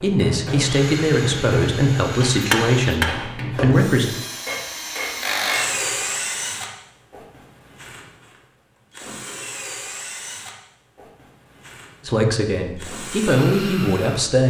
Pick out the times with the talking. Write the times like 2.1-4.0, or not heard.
0.0-4.1, 12.1-14.4.